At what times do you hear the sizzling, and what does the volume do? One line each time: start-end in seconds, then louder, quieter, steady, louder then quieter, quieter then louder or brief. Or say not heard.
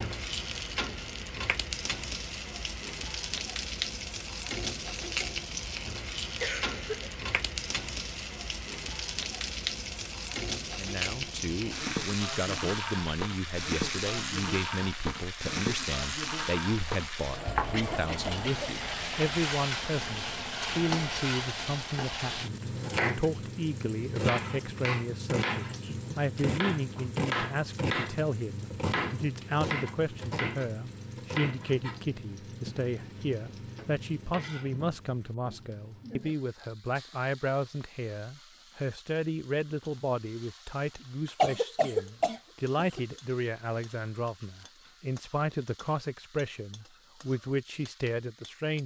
0.0-48.8 quieter.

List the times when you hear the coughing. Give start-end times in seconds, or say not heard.
6.4-7.2, 17.7-18.8, 41.4-43.0.